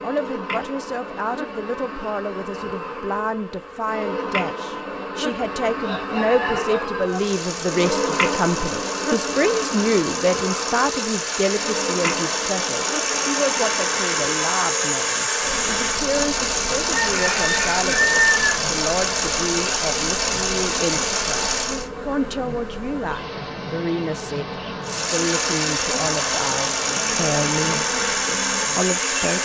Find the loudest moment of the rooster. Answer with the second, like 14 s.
18 s.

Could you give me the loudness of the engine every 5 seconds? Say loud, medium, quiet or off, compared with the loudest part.
off, medium, loud, loud, loud, loud.